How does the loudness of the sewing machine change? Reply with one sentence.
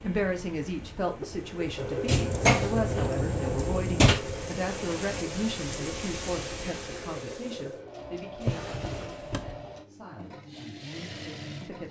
The volume of the sewing machine goes down.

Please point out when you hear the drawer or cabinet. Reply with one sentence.
You can hear the drawer or cabinet from 2.0 to 4.2 s and from 8.3 to 9.6 s.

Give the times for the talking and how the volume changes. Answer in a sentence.
The talking can be heard from 0.0 to 11.8 s, getting quieter.